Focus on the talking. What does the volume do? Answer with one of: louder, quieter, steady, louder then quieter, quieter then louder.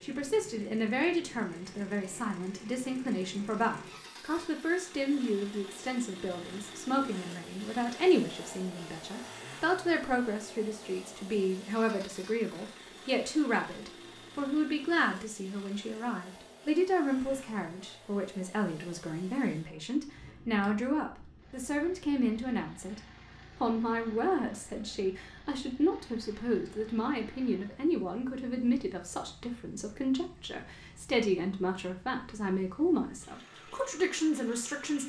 steady.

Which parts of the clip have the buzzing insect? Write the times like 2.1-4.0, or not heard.
not heard.